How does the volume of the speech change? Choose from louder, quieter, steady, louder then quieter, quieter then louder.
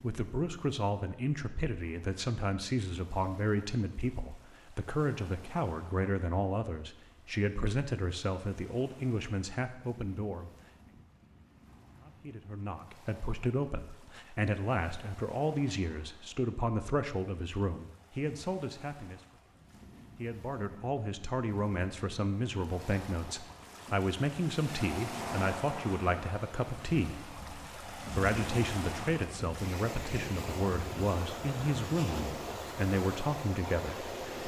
steady.